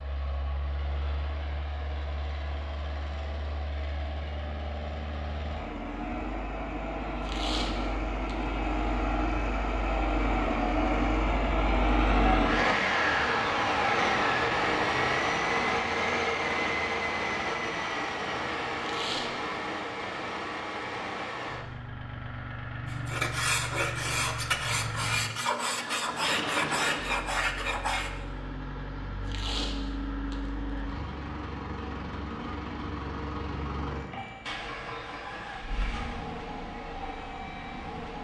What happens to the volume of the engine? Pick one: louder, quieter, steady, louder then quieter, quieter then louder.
louder then quieter.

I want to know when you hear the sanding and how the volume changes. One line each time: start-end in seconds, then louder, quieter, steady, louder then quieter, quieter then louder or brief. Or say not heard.
22.9-28.2 steady.